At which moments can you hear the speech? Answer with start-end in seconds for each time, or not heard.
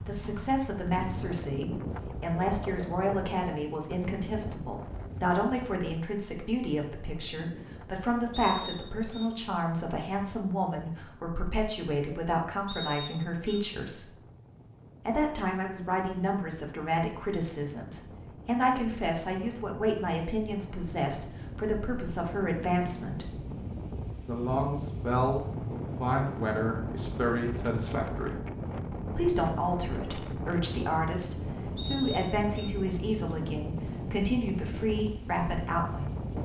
0.1-14.1, 15.1-23.2, 24.2-28.4, 29.1-36.1.